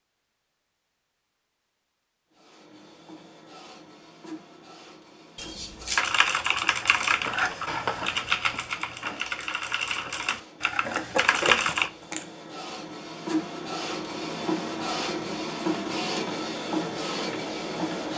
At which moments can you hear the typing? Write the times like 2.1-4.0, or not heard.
6.0-11.9.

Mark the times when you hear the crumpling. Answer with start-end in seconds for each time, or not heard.
5.3-6.0, 10.8-12.2.